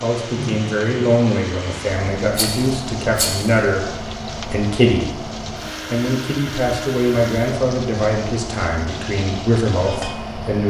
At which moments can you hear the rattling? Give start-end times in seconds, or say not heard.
2.3-3.5.